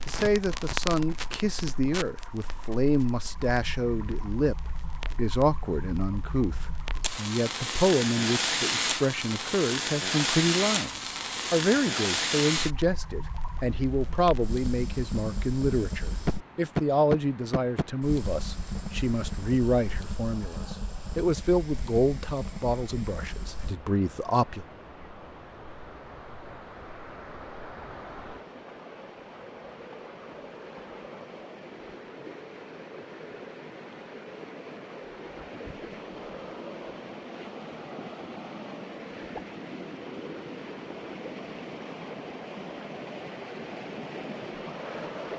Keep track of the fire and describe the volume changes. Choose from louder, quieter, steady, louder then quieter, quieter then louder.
louder then quieter.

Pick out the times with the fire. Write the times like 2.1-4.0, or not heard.
0.0-23.8.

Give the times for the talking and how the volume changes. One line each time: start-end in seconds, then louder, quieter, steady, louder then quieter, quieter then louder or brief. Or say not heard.
0.1-24.6 steady.